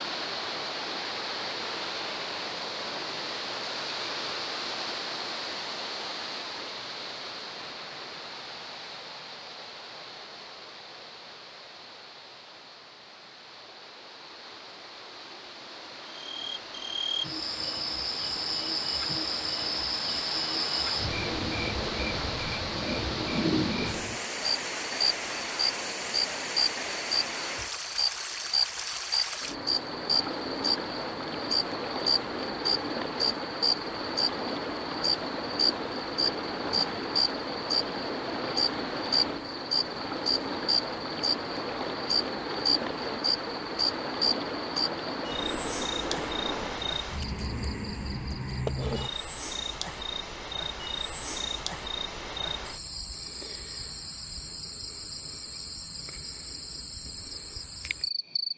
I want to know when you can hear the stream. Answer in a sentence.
You can hear the stream from 0.0 to 47.0 s.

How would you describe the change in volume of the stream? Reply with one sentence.
The volume of the stream goes down, then up.